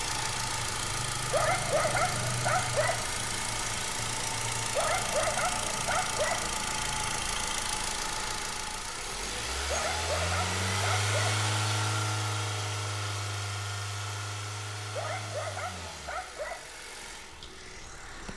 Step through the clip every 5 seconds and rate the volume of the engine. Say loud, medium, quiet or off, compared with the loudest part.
loud, loud, loud, medium.